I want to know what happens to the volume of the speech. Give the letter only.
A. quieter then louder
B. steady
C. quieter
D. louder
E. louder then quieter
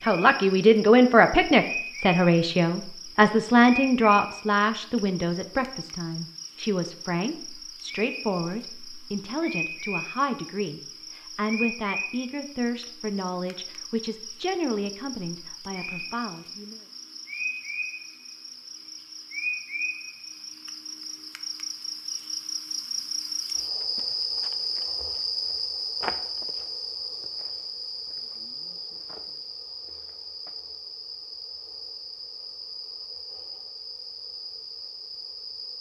C.